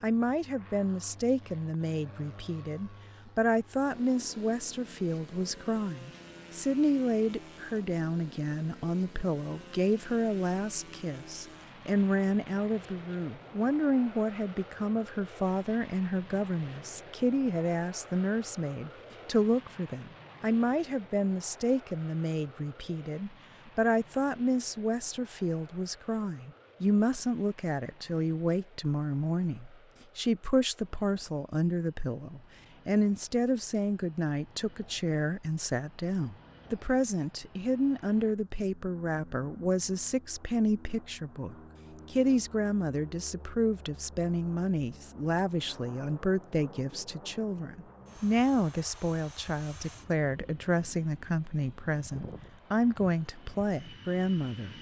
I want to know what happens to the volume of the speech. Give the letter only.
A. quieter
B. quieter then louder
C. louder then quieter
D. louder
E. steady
E.